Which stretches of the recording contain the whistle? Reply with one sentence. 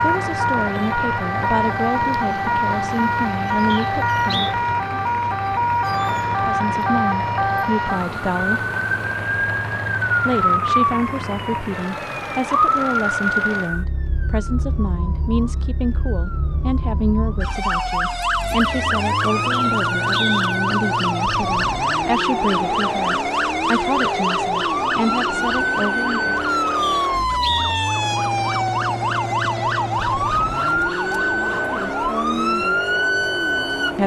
You can hear the whistle from 3.7 to 4.5 s, from 19.5 to 20.4 s and from 26.8 to 27.9 s.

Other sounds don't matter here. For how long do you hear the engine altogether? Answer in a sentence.
The engine can be heard for 34 seconds in total.